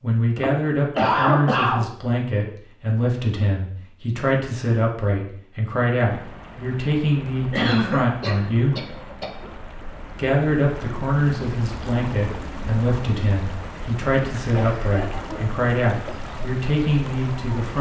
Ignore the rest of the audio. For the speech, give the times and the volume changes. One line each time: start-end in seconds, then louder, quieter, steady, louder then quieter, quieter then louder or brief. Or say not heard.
0.0-8.8 steady
10.2-17.7 steady.